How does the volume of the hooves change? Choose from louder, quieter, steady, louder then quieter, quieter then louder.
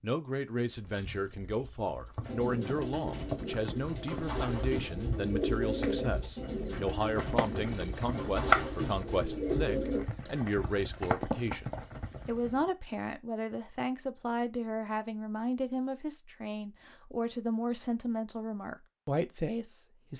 louder then quieter.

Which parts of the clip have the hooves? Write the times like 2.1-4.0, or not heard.
0.7-12.7.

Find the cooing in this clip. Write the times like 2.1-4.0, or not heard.
2.2-10.1.